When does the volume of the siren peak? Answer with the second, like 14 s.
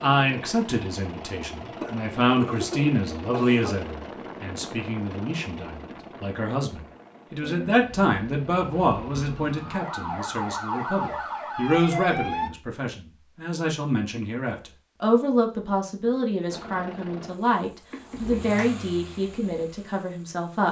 12 s.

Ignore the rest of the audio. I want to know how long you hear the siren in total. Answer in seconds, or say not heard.
5 s.